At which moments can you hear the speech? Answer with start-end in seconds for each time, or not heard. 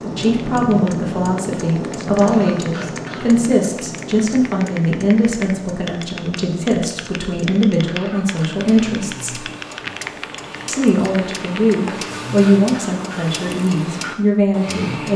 0.1-9.4, 10.7-15.1.